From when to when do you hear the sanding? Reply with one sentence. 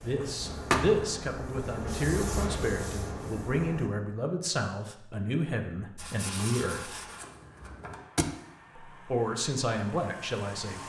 You can hear the sanding from 0.0 to 3.9 s and from 6.0 to 8.0 s.